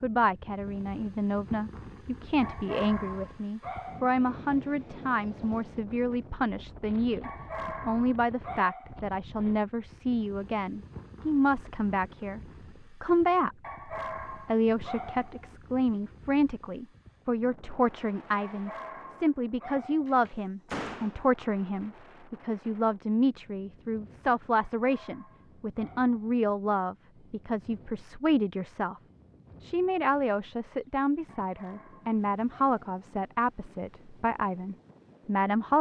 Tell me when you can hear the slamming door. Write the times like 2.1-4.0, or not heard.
20.1-21.2.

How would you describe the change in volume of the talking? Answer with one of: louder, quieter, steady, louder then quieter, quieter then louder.
steady.